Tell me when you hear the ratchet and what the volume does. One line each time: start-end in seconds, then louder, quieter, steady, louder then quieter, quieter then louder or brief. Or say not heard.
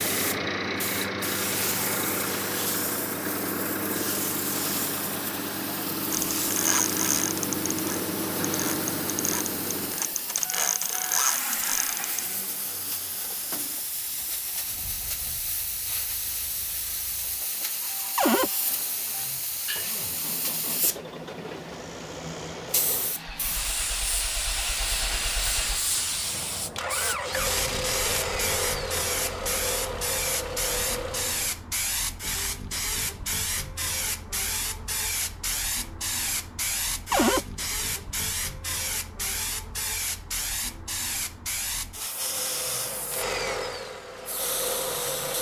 6.1-12.2 quieter then louder.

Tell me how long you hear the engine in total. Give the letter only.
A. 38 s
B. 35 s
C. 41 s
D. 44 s
B.